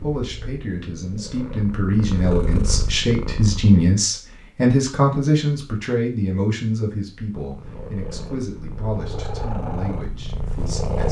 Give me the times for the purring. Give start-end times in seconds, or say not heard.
0.0-3.8, 7.3-11.0.